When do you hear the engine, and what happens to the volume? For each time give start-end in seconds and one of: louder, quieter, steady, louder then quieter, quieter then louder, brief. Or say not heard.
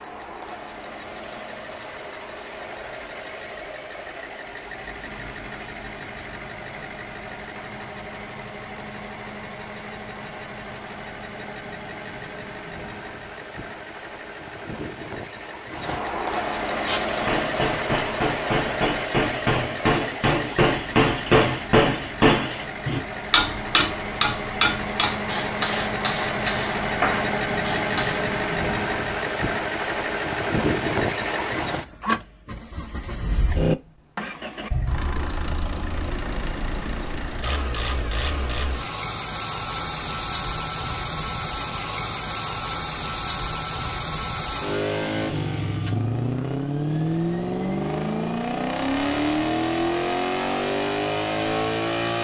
0.0-52.2 louder.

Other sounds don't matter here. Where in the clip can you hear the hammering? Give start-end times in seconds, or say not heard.
16.9-28.2.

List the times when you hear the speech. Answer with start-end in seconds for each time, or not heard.
not heard.